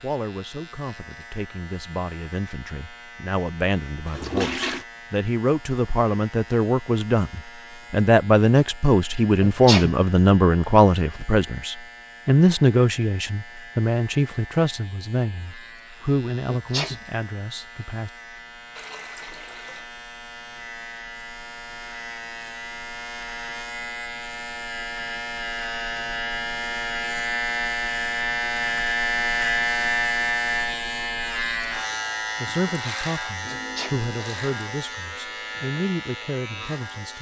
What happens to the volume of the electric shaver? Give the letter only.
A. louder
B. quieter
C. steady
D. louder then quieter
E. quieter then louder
A.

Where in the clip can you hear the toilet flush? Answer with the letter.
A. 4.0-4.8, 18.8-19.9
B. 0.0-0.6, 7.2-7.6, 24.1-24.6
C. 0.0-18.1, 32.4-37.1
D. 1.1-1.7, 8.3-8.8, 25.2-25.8
A.